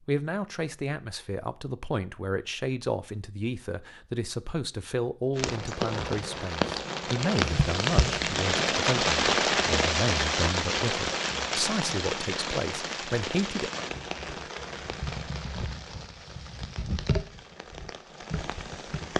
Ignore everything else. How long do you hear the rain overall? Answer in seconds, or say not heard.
14 s.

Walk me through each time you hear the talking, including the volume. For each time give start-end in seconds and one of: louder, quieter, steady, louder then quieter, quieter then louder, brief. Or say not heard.
0.1-13.7 steady.